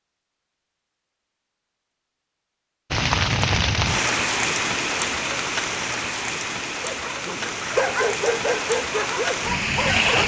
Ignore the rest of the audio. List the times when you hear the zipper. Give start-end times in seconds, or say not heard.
not heard.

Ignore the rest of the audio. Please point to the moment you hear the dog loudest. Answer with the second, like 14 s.
8 s.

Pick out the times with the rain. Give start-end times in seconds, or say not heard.
2.9-10.2.